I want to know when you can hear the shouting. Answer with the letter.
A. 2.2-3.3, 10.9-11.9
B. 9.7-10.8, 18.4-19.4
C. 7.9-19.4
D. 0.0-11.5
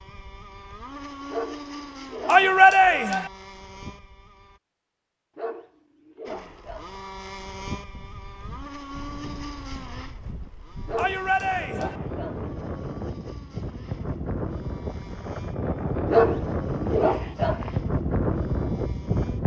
A.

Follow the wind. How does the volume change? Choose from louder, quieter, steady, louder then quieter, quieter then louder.
louder.